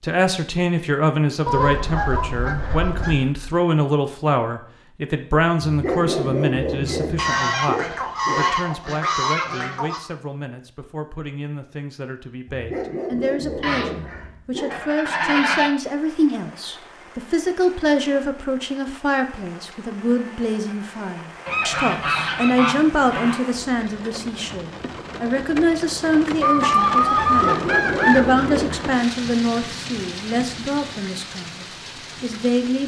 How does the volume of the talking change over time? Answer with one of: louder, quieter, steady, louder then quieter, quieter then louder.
quieter then louder.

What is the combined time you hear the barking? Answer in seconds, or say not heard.
7 s.